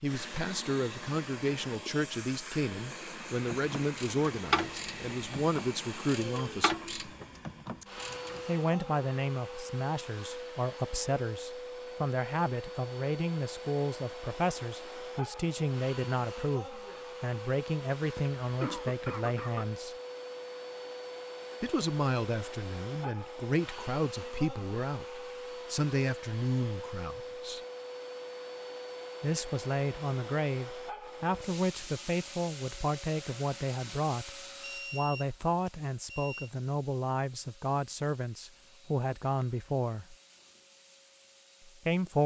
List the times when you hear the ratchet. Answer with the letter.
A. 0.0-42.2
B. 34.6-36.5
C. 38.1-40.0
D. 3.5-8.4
D.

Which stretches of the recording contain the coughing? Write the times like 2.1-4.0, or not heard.
18.1-19.7.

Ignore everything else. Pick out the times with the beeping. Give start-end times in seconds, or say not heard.
34.6-36.5.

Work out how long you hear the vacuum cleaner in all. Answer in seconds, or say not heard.
42 s.